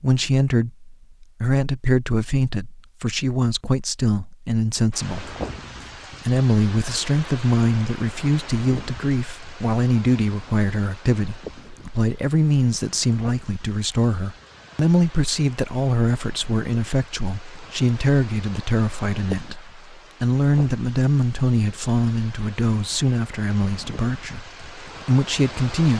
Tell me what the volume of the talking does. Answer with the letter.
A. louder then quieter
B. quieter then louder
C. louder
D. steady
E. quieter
D.